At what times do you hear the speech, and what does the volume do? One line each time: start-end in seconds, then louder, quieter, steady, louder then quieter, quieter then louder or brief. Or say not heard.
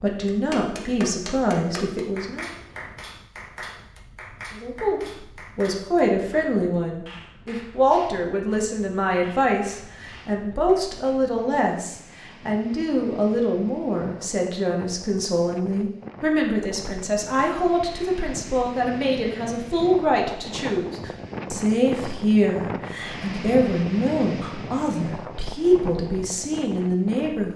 0.0-2.5 brief
4.5-27.5 steady.